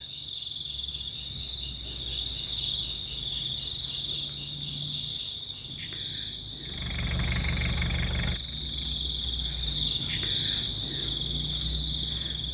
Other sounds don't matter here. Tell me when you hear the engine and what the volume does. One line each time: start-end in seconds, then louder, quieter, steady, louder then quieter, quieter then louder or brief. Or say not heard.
6.6-12.4 quieter.